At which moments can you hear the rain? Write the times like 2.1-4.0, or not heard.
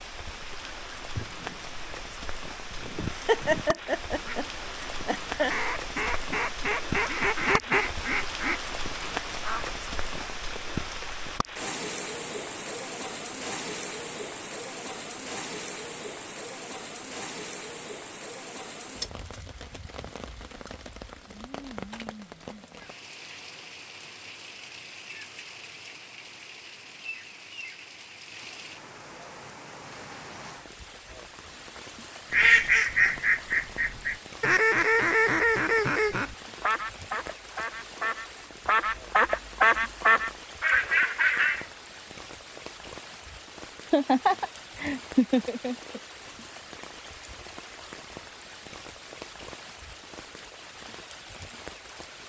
0.0-52.2.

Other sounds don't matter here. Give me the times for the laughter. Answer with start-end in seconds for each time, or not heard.
3.1-5.5, 43.9-46.0.